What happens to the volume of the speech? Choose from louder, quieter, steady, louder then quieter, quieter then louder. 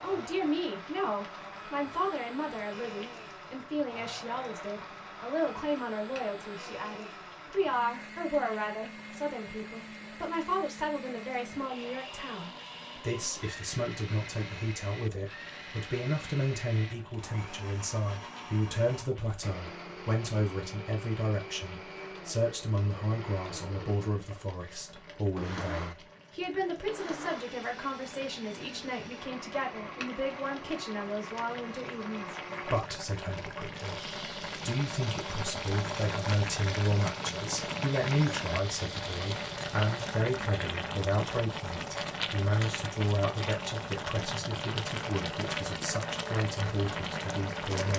steady.